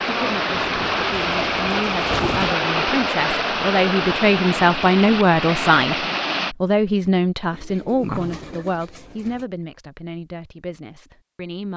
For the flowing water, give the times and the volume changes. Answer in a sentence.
The flowing water can be heard from 0.0 to 6.5 s, at a steady volume.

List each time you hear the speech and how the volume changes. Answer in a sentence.
The speech can be heard from 0.1 to 11.7 s, getting louder then quieter.